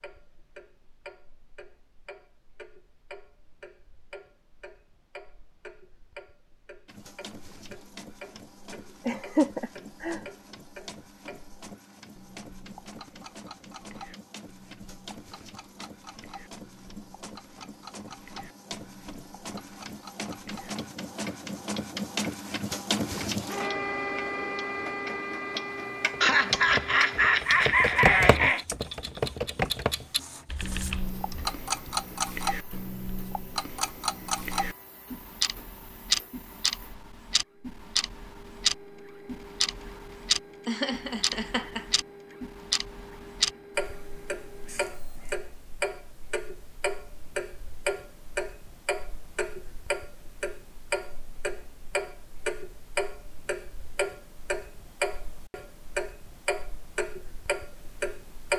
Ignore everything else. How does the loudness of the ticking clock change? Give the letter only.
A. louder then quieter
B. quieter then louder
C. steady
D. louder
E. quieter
D.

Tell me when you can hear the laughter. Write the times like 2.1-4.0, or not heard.
9.1-10.2, 26.2-28.6, 40.6-41.9.